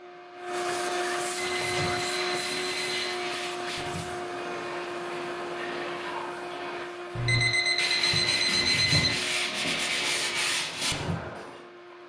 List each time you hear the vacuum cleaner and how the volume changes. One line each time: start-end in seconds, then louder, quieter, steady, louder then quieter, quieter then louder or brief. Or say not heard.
0.0-12.0 quieter.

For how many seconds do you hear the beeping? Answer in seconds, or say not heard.
4 s.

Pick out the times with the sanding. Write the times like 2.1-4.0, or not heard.
1.3-11.6.